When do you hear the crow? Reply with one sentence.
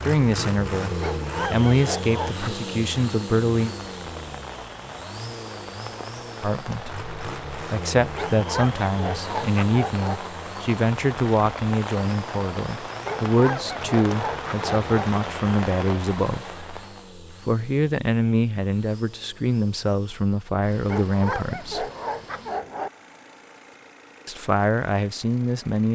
You can't hear the crow here.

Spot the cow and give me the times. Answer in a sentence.
You can't hear the cow here.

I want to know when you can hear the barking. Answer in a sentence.
You can hear the barking from 1.0 to 2.6 s, from 8.2 to 10.2 s, from 13.1 to 15.1 s and from 20.9 to 22.9 s.